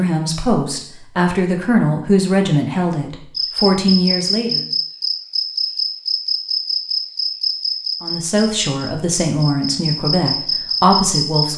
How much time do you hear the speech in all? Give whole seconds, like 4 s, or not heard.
8 s.